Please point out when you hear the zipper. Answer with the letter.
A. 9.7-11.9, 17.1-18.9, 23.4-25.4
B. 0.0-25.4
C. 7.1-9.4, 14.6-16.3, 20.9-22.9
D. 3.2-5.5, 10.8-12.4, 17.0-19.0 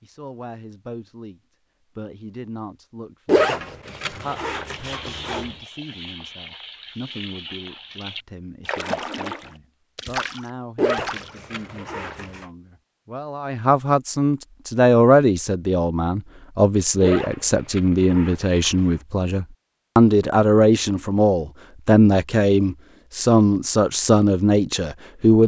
D.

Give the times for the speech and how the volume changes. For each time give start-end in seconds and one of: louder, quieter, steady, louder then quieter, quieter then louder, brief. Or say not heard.
0.0-25.4 louder.